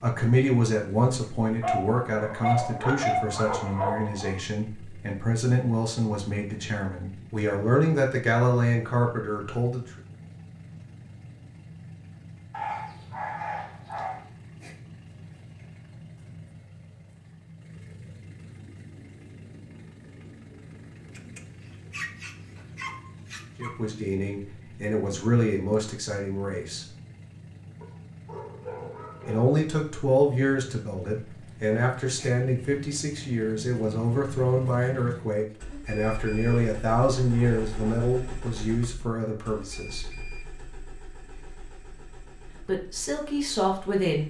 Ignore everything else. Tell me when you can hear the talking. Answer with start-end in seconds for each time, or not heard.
0.0-9.8, 23.6-26.9, 29.2-40.1, 42.6-44.2.